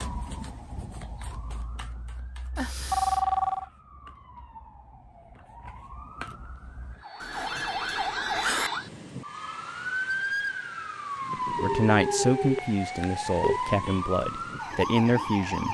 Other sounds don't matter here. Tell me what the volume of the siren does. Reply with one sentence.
The volume of the siren goes up.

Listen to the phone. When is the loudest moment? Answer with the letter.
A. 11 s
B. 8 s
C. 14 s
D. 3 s
D.